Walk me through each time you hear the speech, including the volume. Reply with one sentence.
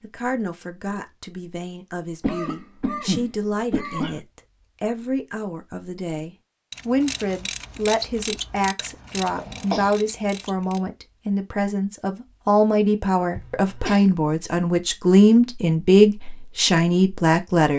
You can hear the speech from 0.0 to 17.7 s, getting louder.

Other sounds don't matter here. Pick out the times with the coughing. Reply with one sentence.
You can hear the coughing from 2.2 to 4.2 s, from 9.3 to 10.0 s and from 13.3 to 14.1 s.